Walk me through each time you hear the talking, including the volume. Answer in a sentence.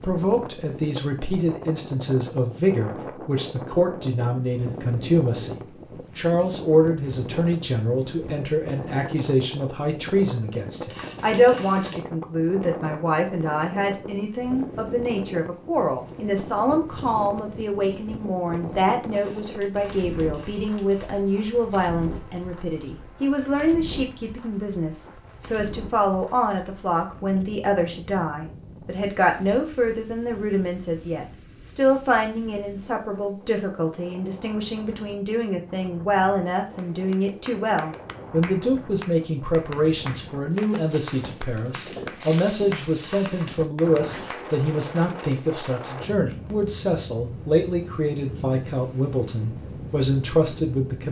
The talking can be heard from 0.0 to 51.0 s, at a steady volume.